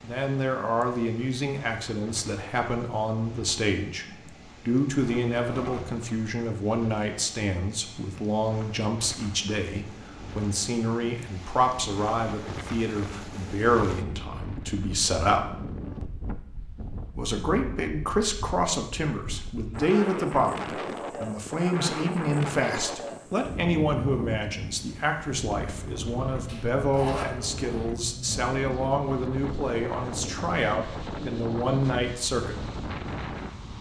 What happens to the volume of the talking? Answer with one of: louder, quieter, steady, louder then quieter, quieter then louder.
steady.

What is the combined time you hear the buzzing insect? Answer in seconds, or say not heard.
not heard.